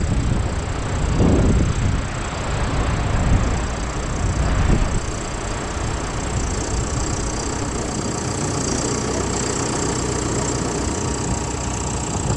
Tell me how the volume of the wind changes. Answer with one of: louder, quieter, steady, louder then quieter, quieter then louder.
quieter.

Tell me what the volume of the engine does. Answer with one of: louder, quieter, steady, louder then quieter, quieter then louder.
louder.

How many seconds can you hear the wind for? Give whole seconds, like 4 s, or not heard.
12 s.